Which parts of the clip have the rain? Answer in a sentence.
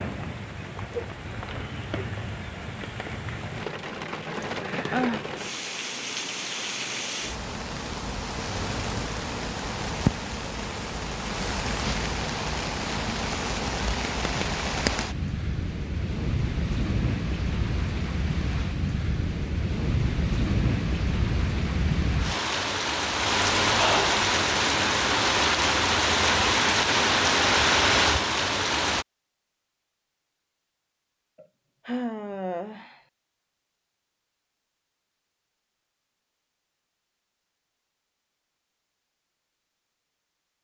The rain can be heard from 0.0 to 29.1 s.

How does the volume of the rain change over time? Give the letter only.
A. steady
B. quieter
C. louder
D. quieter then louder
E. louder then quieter
C.